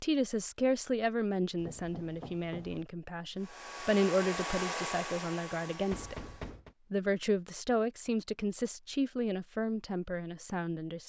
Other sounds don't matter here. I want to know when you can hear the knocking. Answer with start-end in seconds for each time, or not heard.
1.6-2.9, 5.9-6.8.